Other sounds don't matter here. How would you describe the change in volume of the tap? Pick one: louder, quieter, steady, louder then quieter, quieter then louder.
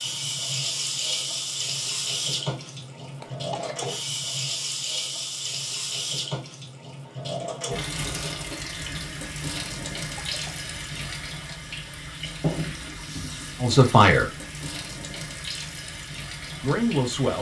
quieter.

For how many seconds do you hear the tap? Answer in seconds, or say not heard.
17 s.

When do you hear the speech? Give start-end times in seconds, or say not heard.
13.6-14.3, 16.6-17.3.